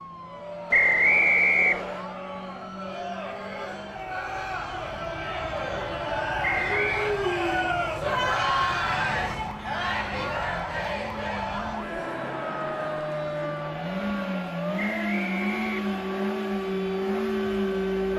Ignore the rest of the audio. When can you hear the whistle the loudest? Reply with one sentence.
The loudest moment of the whistle is at 1 second.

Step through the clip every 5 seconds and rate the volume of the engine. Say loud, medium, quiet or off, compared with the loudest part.
off, off, medium, loud.